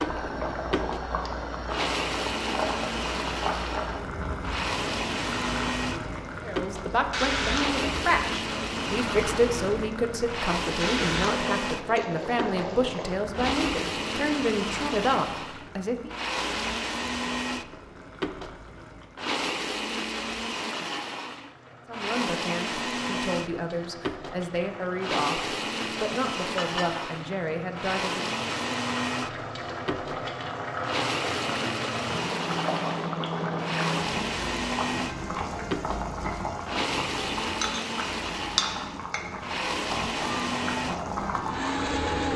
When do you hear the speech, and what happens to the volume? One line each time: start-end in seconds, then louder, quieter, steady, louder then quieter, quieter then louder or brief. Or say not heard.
6.4-16.1 steady
21.9-28.3 steady.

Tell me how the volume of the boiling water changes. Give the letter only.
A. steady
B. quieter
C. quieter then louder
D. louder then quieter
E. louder
C.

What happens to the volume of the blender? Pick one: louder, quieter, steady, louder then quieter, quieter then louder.
steady.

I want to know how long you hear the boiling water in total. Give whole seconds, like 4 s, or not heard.
42 s.